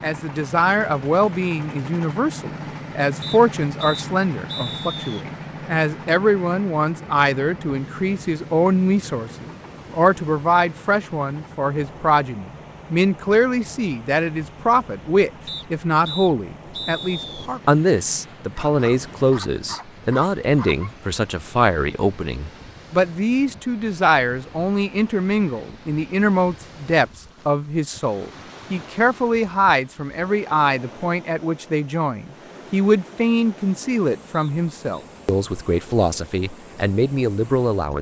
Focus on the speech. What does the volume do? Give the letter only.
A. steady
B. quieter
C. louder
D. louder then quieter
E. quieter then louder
A.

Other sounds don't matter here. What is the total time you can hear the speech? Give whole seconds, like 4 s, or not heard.
38 s.